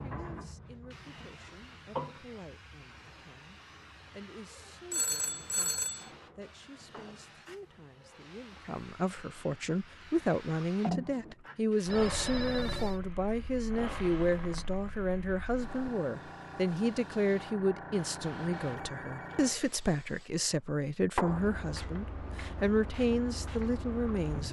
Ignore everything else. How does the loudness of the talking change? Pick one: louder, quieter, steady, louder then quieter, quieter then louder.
louder.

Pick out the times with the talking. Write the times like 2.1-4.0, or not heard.
0.0-24.4.